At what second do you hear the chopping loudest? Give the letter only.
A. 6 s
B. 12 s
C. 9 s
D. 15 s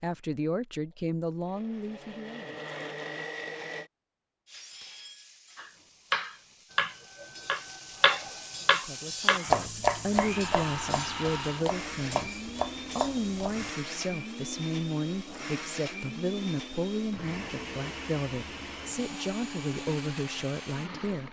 C.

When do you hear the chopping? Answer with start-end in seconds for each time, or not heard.
5.5-13.7.